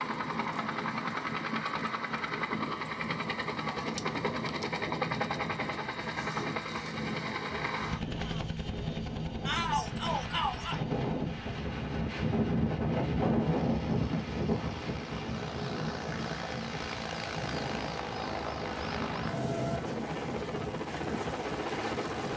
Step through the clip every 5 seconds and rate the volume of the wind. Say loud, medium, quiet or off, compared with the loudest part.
medium, medium, loud, medium, medium.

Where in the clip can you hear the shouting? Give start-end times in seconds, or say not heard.
9.4-10.8.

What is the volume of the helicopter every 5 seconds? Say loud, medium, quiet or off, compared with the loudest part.
loud, loud, medium, loud, loud.